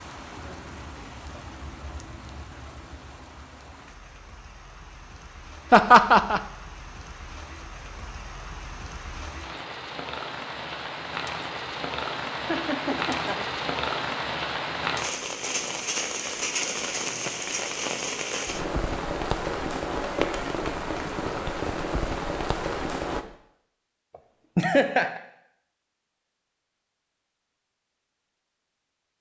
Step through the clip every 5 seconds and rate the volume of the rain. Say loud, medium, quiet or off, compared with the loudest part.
quiet, quiet, loud, loud, loud, off.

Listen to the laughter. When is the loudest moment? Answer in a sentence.
The loudest moment of the laughter is at 6 seconds.